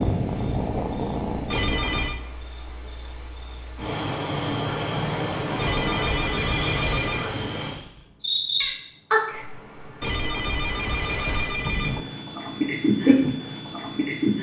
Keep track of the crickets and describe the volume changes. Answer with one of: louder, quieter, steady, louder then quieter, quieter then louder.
steady.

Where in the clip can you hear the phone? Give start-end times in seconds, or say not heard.
1.5-2.2, 5.5-7.2, 10.0-12.1.